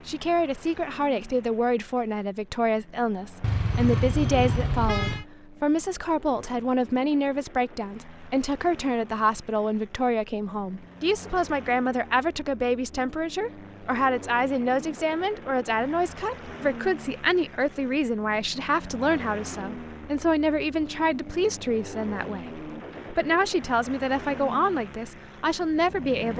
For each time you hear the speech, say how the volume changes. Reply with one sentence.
You can hear the speech from 0.1 to 26.3 s, at a steady volume.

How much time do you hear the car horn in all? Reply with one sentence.
The car horn can be heard for 2 seconds in total.